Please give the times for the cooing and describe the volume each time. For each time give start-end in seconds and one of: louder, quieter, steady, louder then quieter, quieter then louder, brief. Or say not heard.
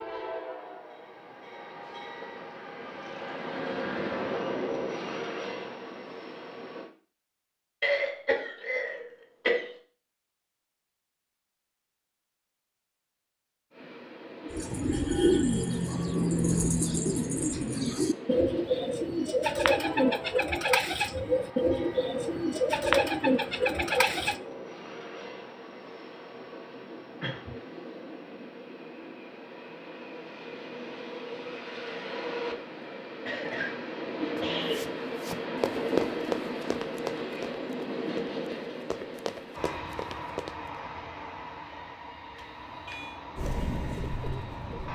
14.5-24.4 steady
43.4-44.9 brief.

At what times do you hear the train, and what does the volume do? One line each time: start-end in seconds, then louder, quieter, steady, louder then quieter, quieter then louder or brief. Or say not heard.
0.0-6.9 louder then quieter
13.7-44.9 louder then quieter.